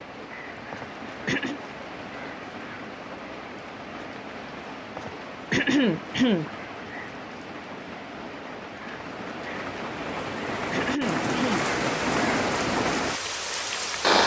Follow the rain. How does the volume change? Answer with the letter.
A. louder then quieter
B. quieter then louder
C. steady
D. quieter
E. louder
E.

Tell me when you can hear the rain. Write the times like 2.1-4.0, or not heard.
0.0-14.2.